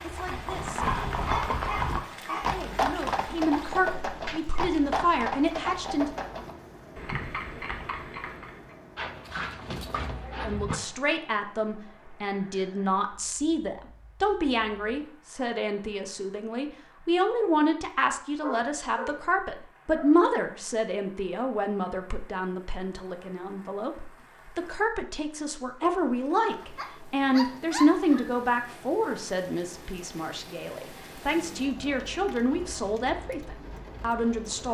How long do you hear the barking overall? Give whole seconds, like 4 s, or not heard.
7 s.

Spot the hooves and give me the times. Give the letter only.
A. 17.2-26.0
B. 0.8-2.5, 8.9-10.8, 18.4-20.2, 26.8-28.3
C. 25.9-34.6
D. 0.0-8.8
D.